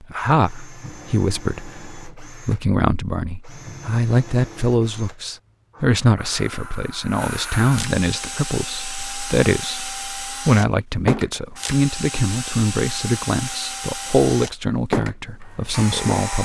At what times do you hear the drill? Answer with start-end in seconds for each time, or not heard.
0.1-16.4.